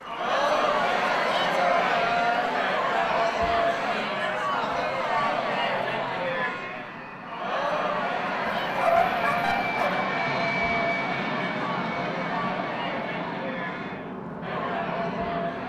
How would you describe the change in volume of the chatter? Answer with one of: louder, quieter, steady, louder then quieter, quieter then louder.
quieter.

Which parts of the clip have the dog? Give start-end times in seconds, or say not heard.
8.6-10.1.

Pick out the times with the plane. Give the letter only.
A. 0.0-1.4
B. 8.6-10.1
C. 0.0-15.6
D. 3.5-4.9
C.